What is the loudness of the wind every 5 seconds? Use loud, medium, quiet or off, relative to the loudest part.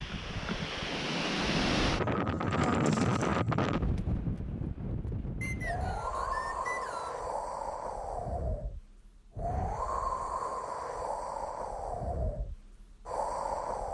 loud, medium, medium.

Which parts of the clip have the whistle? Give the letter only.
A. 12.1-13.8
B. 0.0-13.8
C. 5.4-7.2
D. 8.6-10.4
C.